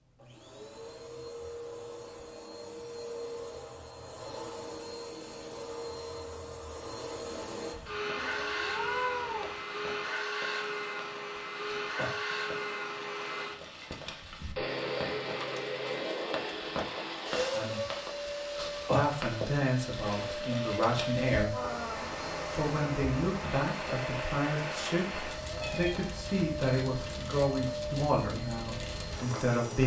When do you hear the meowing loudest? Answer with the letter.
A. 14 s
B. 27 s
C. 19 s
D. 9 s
D.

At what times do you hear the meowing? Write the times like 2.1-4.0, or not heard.
8.2-9.6, 25.6-26.1.